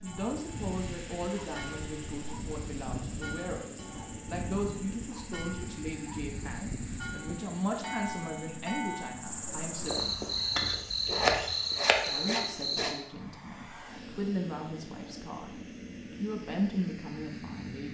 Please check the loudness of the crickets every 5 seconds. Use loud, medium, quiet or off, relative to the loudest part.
quiet, quiet, loud, off.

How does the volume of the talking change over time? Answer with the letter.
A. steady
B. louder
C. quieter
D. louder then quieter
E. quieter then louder
A.